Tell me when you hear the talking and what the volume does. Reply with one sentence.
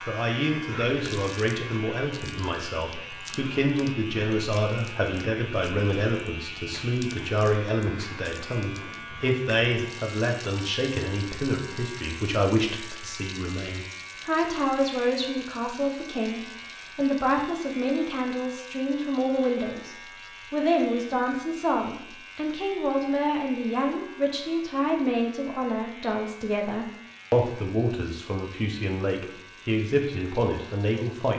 The talking can be heard from 0.0 to 31.3 s, at a steady volume.